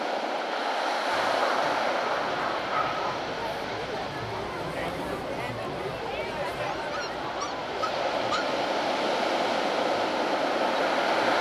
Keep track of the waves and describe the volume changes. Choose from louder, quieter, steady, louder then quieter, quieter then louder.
quieter then louder.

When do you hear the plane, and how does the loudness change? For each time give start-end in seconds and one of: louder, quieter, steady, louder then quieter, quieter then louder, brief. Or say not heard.
not heard.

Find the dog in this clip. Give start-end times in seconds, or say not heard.
1.1-3.1, 6.7-8.6.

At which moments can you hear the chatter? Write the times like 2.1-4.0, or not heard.
2.1-11.3.